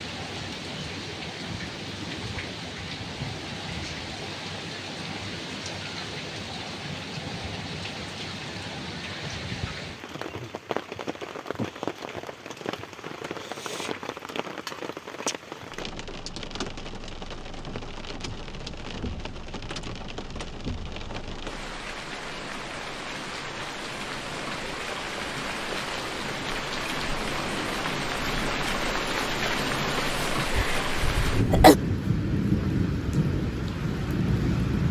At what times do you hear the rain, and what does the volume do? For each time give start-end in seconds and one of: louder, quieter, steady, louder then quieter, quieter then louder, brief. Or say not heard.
0.0-34.8 louder.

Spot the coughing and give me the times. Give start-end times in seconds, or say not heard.
30.6-31.8.